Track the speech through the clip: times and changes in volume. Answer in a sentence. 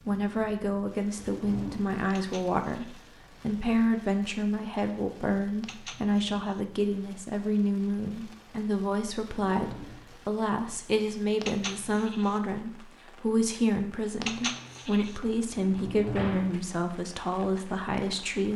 You can hear the speech from 0.0 to 18.5 s, at a steady volume.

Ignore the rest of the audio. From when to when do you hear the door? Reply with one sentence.
You can hear the door from 1.1 to 1.8 s, from 9.5 to 10.0 s and from 15.5 to 16.5 s.